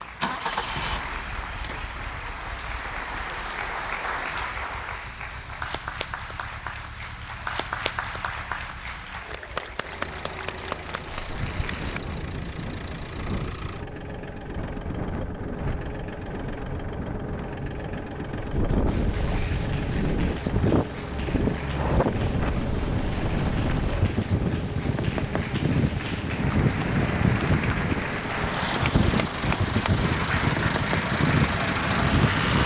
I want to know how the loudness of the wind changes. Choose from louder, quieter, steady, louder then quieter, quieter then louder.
louder.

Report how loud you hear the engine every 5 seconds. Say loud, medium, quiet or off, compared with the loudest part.
medium, quiet, medium, medium, medium, medium, loud.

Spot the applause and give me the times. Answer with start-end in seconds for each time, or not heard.
0.0-12.0, 18.9-32.5.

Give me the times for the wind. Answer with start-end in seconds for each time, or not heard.
11.2-32.6.